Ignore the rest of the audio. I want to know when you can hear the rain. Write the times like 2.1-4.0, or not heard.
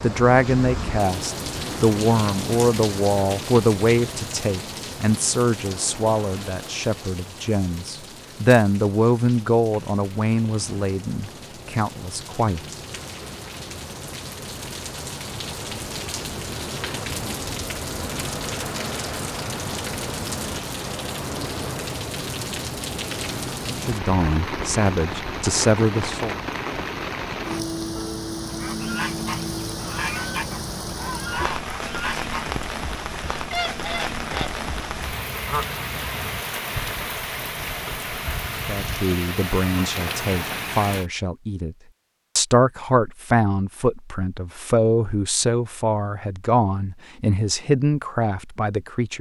0.0-41.1.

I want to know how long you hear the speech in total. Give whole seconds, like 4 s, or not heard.
25 s.